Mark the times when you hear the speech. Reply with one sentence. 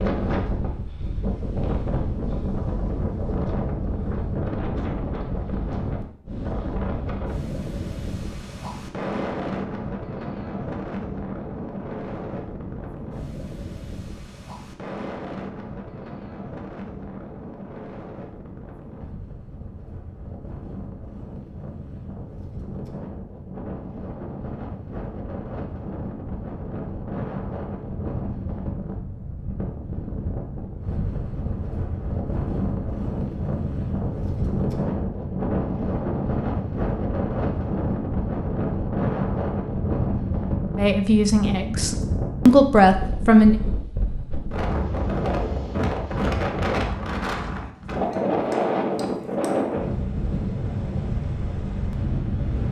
You can hear the speech from 40.8 to 43.5 s.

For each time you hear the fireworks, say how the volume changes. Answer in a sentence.
The fireworks can't be heard in this clip.